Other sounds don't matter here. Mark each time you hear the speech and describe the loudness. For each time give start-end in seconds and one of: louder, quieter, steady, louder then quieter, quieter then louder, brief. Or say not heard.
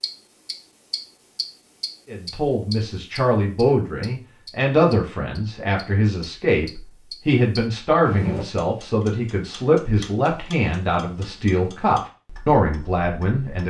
2.0-13.6 steady.